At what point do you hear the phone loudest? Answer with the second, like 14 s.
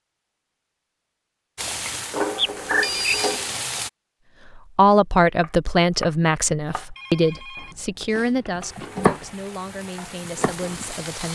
3 s.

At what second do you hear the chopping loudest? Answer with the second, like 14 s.
9 s.